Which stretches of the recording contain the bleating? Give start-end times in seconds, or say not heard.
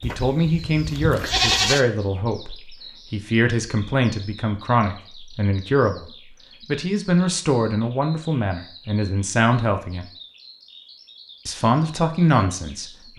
0.0-1.9.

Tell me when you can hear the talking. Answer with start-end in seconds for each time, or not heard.
0.0-10.1, 11.4-13.1.